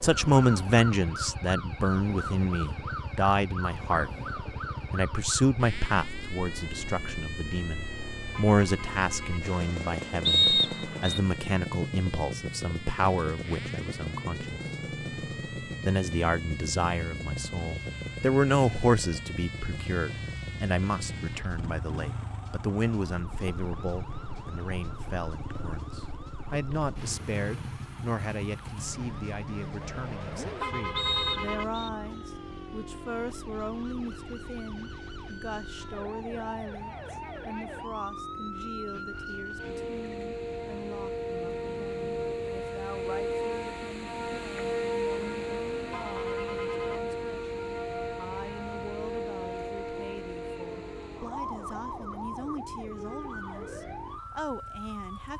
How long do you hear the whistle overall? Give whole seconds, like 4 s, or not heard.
2 s.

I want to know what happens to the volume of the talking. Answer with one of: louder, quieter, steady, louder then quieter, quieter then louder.
quieter.